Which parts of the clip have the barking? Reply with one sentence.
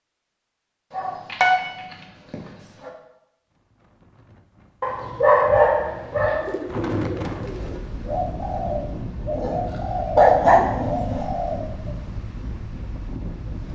The barking can be heard from 0.9 to 1.6 s, from 2.3 to 2.9 s, from 4.8 to 6.5 s and from 9.3 to 11.2 s.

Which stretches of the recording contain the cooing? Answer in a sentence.
The cooing can be heard from 6.5 to 11.9 s.